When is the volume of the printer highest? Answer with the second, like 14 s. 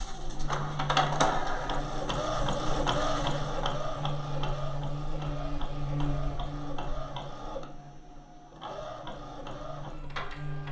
1 s.